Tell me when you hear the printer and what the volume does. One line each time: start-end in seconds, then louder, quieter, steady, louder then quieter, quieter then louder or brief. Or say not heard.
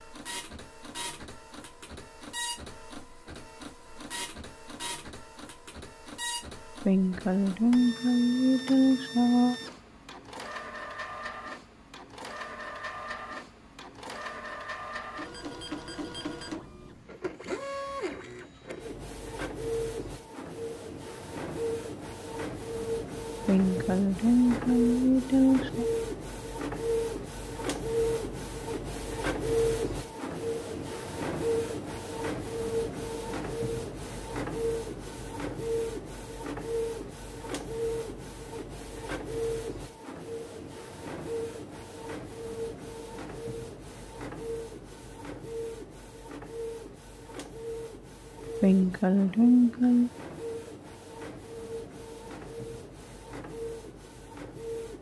0.0-54.9 louder then quieter.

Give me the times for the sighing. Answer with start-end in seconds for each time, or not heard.
6.8-9.6, 23.4-25.9, 48.6-50.1.